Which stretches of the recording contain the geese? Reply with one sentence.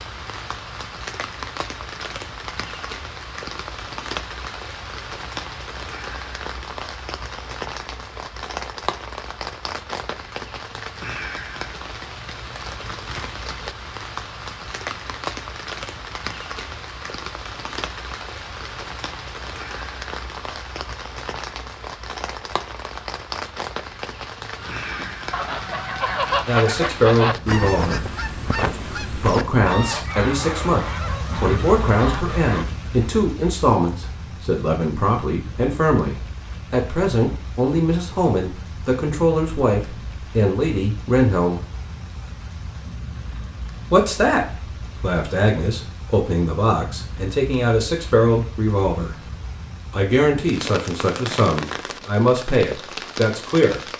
The geese can be heard from 24.6 to 32.6 s.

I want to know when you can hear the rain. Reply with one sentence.
The rain can be heard from 0.0 to 53.9 s.